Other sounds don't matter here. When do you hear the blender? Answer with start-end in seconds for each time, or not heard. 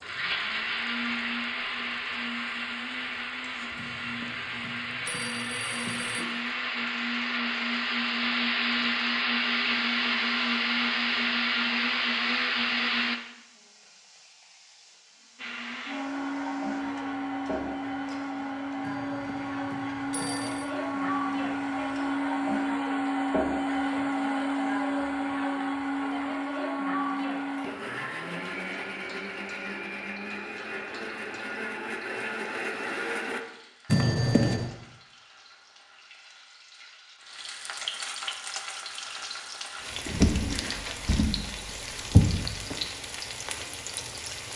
0.0-13.2, 15.3-33.4.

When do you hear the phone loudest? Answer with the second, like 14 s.
34 s.